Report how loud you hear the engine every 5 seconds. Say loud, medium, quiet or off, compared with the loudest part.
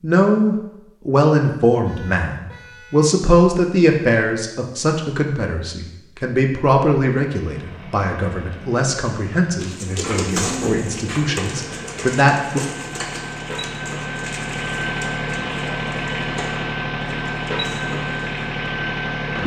off, quiet, medium, loud.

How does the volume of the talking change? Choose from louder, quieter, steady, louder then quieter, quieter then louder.
quieter.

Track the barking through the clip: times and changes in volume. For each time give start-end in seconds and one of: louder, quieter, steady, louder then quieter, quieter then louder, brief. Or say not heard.
not heard.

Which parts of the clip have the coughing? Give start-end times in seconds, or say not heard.
not heard.